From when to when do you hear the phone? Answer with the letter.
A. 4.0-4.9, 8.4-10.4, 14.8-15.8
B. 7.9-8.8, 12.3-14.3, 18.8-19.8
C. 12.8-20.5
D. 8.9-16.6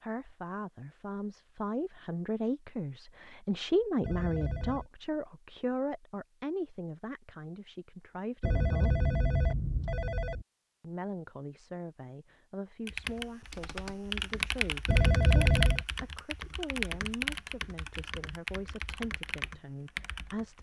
A.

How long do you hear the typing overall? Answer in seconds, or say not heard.
8 s.